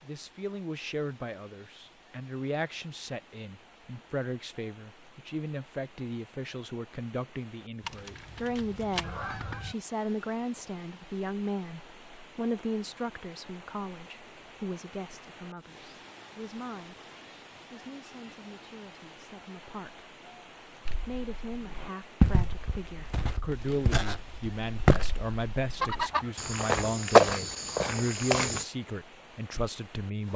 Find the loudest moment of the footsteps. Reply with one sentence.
The loudest moment of the footsteps is at 27 seconds.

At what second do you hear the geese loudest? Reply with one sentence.
The loudest moment of the geese is at 26 seconds.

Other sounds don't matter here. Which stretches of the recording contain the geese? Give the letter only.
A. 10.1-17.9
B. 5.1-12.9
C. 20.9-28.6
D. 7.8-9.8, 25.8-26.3
D.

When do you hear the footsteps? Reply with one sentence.
The footsteps can be heard from 20.9 to 28.6 s.